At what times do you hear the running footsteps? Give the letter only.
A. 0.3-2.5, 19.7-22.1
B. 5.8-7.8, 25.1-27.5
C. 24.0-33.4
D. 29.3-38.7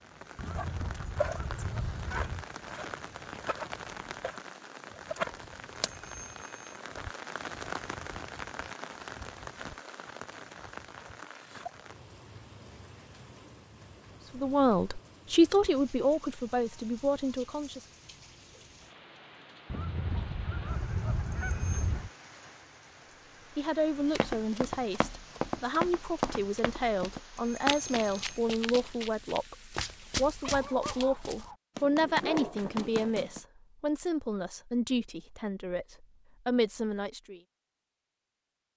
C.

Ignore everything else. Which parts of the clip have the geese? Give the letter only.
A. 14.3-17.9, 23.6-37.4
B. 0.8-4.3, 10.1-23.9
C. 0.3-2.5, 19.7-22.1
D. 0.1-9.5
C.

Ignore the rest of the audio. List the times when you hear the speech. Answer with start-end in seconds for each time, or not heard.
14.3-17.9, 23.6-37.4.